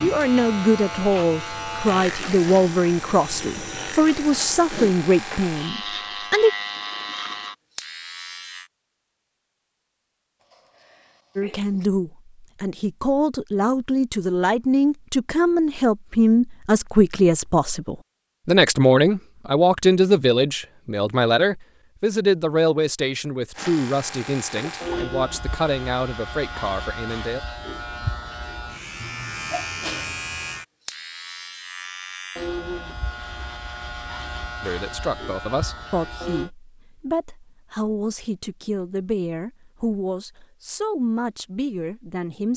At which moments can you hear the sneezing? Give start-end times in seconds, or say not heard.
10.4-11.9, 24.7-25.1, 29.0-30.3.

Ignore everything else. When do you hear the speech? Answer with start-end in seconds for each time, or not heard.
0.0-6.5, 11.3-27.4, 34.6-42.5.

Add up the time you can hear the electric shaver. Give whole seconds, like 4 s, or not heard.
22 s.